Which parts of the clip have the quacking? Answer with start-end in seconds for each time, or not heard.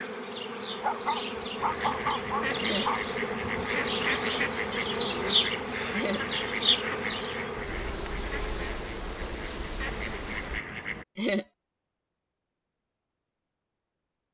1.6-11.1.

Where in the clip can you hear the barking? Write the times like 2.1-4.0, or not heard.
0.8-3.0.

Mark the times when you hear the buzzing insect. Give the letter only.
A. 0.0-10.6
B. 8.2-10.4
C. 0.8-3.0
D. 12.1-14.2
A.